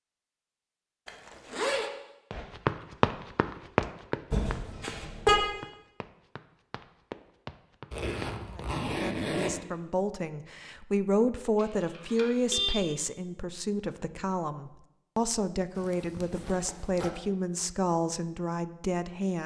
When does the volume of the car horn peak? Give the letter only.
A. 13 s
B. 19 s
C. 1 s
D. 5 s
D.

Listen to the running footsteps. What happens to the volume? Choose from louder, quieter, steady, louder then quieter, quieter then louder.
quieter then louder.